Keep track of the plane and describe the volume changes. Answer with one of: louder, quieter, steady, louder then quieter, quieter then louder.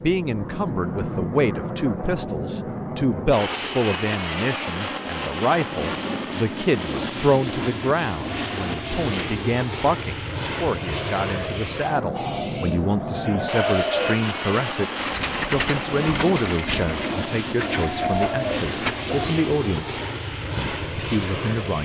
steady.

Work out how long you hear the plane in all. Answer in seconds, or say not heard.
22 s.